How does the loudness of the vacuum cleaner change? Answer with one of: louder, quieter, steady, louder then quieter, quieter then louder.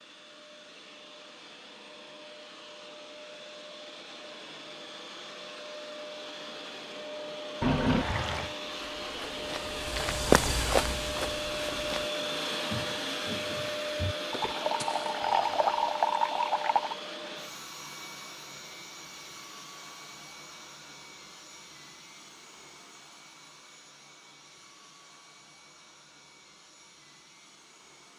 louder then quieter.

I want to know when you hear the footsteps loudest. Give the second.
10 s.